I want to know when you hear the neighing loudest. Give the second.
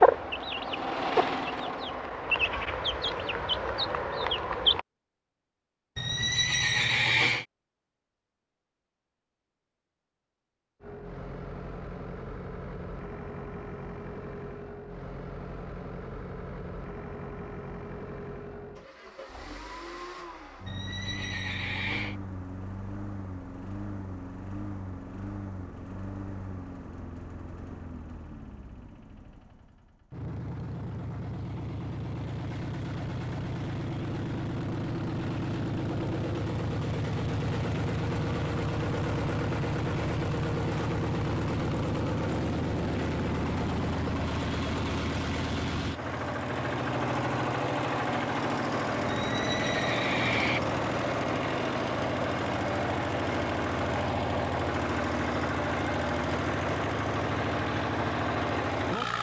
7 s.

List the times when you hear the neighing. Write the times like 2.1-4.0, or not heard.
6.0-7.5, 20.6-22.1, 49.1-50.6.